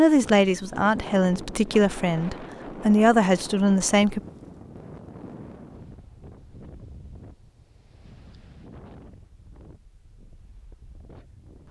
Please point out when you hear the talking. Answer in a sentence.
You can hear the talking from 0.0 to 4.2 s.